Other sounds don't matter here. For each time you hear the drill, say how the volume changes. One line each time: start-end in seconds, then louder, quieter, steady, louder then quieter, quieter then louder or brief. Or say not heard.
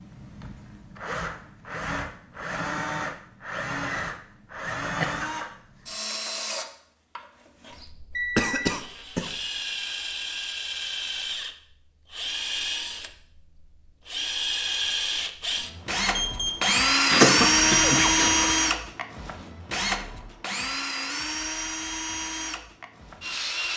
0.0-23.7 louder then quieter.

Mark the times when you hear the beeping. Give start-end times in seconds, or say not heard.
8.2-8.7, 16.1-16.8.